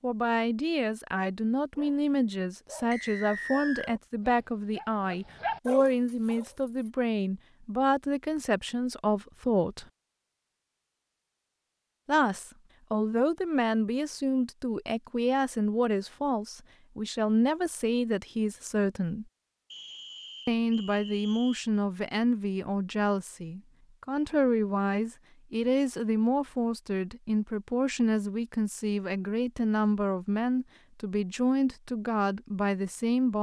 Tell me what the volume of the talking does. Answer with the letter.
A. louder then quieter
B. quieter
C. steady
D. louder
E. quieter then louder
C.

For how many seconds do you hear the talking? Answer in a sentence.
You can hear the talking for 30 seconds altogether.